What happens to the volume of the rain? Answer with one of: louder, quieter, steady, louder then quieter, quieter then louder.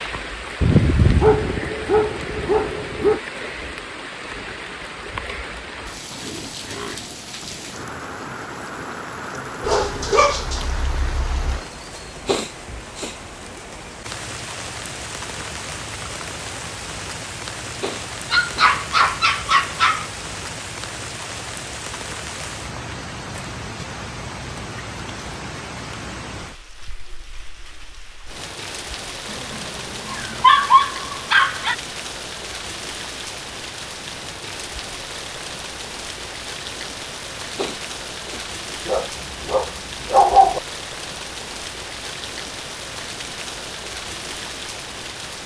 steady.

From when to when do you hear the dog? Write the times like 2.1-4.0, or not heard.
0.6-3.2, 9.6-11.6, 18.3-20.1, 29.3-31.8, 38.9-40.6.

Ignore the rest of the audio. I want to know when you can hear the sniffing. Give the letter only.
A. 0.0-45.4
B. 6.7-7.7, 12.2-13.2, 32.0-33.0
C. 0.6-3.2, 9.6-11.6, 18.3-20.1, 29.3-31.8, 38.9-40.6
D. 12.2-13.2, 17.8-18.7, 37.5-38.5
D.